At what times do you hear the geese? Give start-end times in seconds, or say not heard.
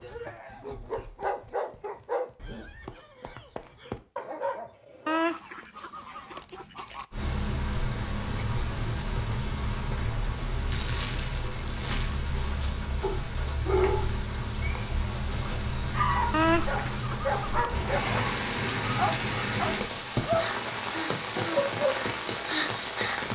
5.0-7.0, 16.3-18.1.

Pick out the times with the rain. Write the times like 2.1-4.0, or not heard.
7.1-23.3.